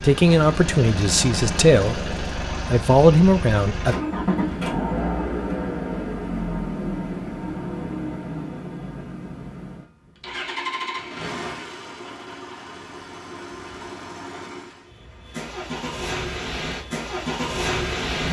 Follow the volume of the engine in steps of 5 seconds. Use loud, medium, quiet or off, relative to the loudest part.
loud, loud, medium, loud.